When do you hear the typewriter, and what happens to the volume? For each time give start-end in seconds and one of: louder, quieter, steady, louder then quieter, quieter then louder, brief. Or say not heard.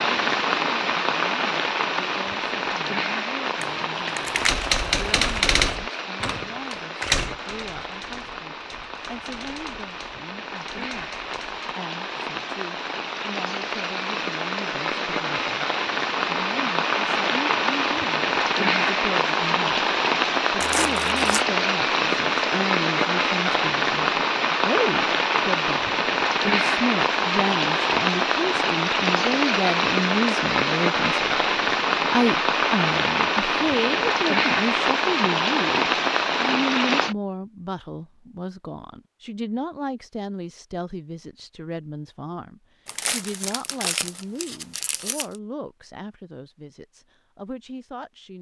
4.3-11.7 quieter.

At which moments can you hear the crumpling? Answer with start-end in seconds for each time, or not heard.
3.6-4.7, 20.6-21.4, 42.9-45.4.